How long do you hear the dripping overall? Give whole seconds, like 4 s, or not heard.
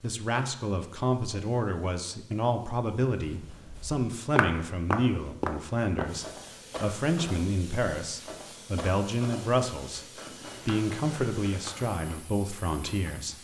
not heard.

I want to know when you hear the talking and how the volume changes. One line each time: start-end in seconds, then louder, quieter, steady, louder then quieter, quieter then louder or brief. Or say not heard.
0.0-13.3 steady.